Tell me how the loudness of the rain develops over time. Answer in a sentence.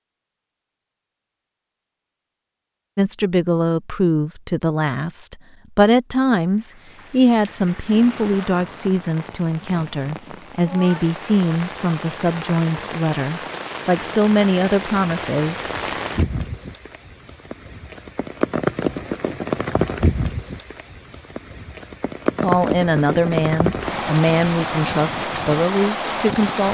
The volume of the rain goes up.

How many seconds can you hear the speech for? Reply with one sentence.
You can hear the speech for 17 seconds altogether.